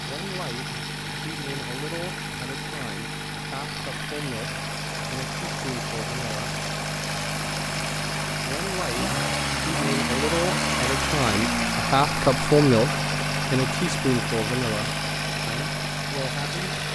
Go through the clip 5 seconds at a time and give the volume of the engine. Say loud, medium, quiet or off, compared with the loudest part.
medium, loud, loud, loud.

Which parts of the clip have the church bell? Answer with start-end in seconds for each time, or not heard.
not heard.